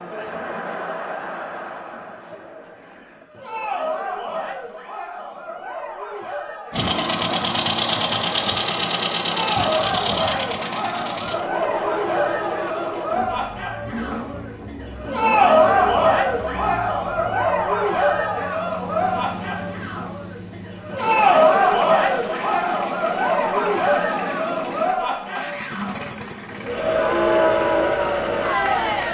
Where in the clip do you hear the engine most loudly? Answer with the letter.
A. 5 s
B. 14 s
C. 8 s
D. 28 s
C.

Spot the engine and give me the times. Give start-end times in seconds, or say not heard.
6.7-29.1.